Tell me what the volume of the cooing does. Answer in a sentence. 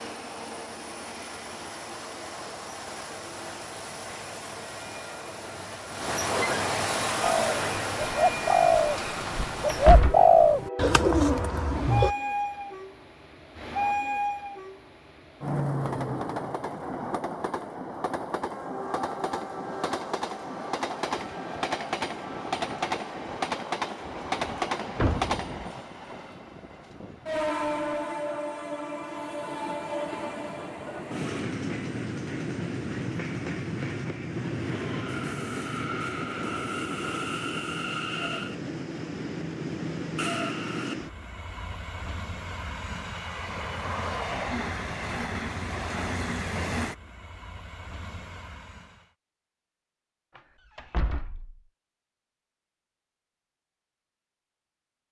The volume of the cooing goes up, then down.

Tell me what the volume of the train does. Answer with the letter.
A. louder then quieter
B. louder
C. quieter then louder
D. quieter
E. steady
E.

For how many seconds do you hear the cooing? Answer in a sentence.
You can hear the cooing for 5 seconds altogether.